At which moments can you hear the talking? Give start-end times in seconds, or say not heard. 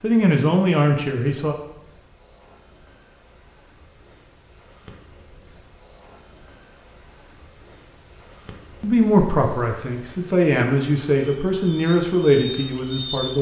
0.0-1.6, 8.8-13.3.